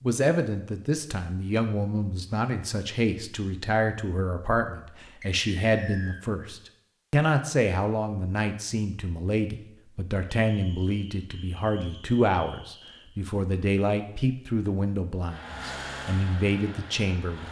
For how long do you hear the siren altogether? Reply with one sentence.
The siren can't be heard in this clip.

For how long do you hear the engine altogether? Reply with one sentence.
The engine can be heard for 2 seconds in total.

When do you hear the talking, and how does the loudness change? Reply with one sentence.
The talking can be heard from 0.0 to 17.4 s, at a steady volume.